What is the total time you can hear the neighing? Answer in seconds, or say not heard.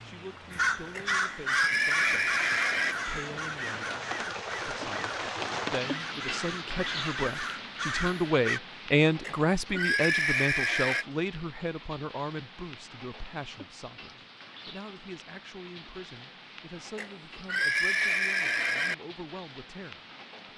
6 s.